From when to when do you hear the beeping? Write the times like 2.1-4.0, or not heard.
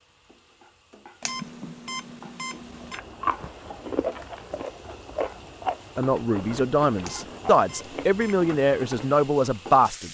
1.2-3.0, 7.0-8.5.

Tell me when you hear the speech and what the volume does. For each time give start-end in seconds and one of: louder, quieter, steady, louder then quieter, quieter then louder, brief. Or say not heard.
6.0-10.0 steady.